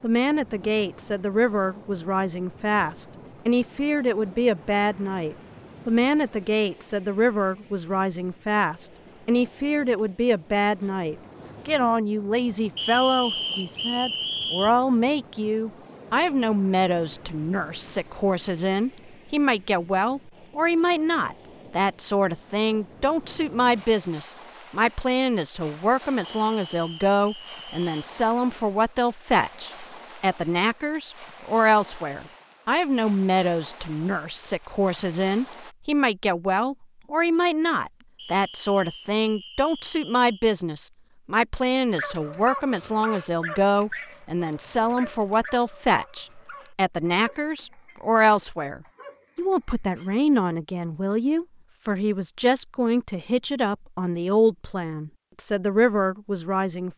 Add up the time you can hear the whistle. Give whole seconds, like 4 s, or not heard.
6 s.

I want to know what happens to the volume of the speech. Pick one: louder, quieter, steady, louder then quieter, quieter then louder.
steady.